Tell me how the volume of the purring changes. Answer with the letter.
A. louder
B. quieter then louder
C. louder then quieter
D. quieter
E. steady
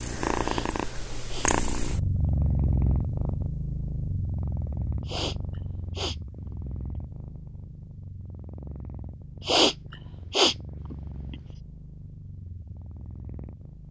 D.